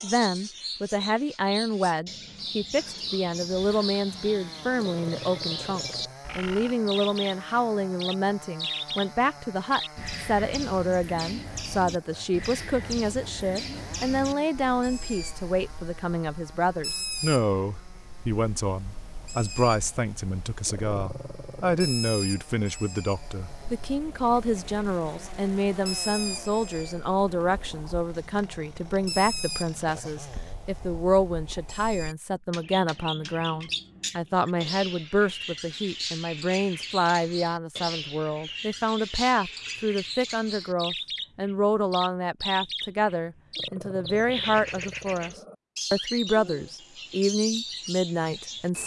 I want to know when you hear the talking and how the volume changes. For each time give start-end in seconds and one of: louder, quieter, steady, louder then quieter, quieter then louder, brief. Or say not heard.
0.0-48.8 steady.